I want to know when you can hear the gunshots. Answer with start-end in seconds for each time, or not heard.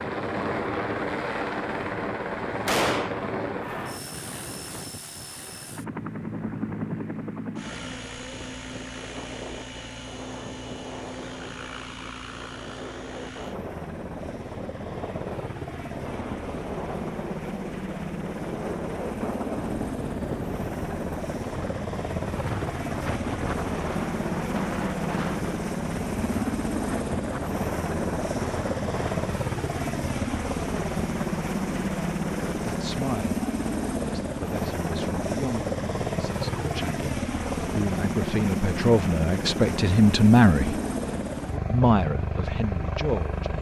2.6-3.2.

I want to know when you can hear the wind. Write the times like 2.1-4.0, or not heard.
0.0-32.5.